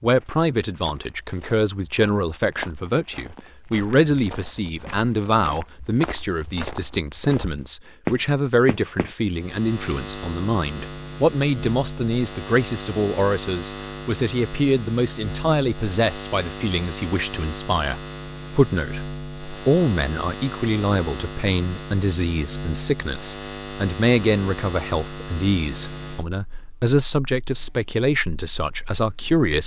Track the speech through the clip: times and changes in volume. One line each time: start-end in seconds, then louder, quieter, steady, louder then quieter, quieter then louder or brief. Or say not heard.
0.0-29.6 steady.